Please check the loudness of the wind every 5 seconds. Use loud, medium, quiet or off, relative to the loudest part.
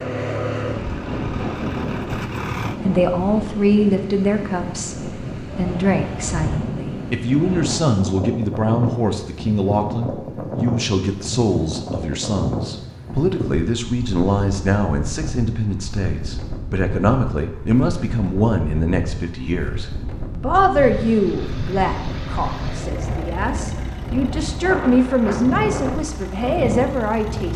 loud, loud, loud, medium, loud, loud.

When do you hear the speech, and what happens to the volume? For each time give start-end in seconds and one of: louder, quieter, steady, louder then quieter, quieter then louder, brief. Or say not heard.
2.9-27.5 steady.